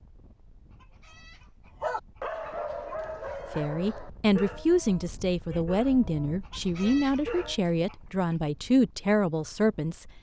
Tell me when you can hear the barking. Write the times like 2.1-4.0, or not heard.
1.8-7.6.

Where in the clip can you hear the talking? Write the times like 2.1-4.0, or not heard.
3.5-10.1.